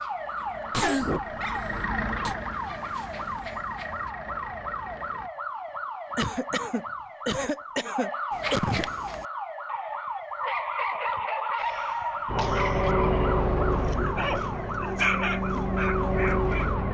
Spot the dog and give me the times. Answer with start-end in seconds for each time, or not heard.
0.0-4.1, 8.3-16.8.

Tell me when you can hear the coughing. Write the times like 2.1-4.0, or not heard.
0.7-2.4, 6.2-8.9, 11.6-12.9.